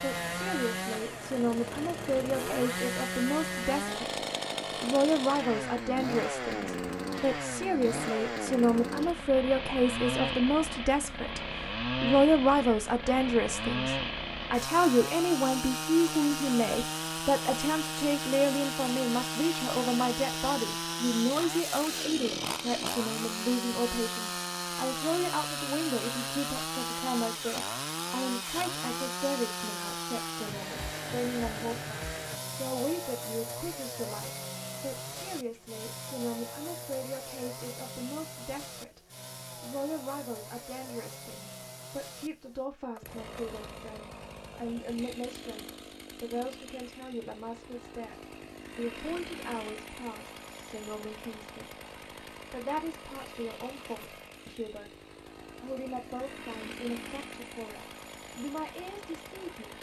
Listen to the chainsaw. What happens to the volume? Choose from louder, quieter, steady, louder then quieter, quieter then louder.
quieter.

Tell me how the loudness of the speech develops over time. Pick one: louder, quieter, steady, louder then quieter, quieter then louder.
quieter.